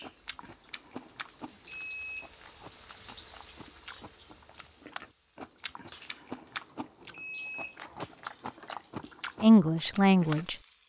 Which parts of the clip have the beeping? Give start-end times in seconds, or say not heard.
1.6-2.3, 7.1-8.2.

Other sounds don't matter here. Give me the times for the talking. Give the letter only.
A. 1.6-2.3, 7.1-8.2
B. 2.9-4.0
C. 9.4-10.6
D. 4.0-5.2
C.